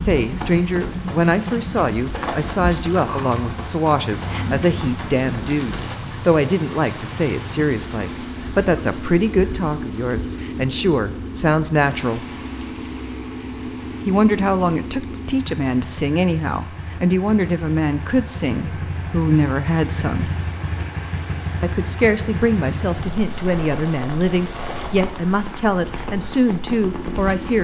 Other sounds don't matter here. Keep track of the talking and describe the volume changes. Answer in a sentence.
The loudness of the talking stays about the same.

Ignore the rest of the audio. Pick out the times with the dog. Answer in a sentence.
You can't hear the dog here.